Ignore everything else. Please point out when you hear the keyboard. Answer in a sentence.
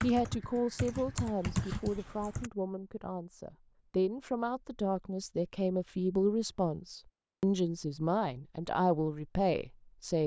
The keyboard can be heard from 0.0 to 2.5 s.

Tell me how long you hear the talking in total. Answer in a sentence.
The talking can be heard for 10 seconds in total.